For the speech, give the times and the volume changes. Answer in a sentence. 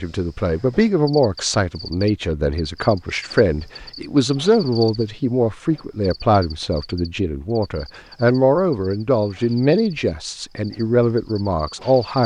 You can hear the speech from 0.0 to 12.2 s, at a steady volume.